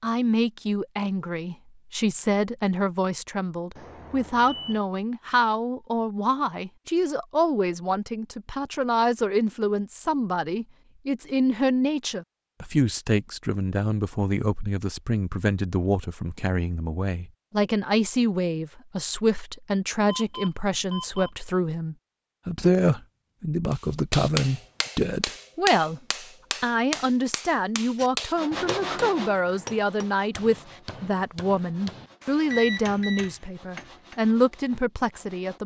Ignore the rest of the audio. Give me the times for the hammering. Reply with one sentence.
You can hear the hammering from 23.7 to 34.2 s.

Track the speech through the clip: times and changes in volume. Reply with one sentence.
You can hear the speech from 0.0 to 26.0 s, at a steady volume; and from 26.6 to 35.6 s, at a steady volume.